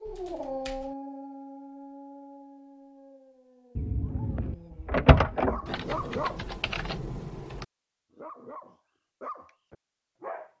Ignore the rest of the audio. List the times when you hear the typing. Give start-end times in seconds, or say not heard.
0.1-0.9, 5.7-7.7.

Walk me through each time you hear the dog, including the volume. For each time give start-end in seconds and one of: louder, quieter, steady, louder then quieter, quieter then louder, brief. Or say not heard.
0.0-6.4 quieter then louder
8.1-10.5 brief.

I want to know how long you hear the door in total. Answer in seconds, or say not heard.
2 s.